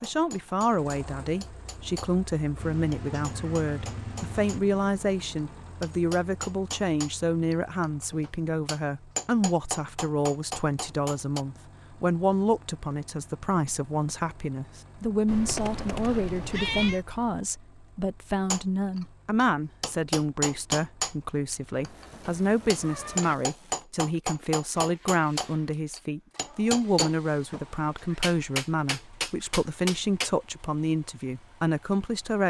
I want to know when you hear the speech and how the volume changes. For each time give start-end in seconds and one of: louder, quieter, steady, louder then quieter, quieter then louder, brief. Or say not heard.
0.0-32.4 steady.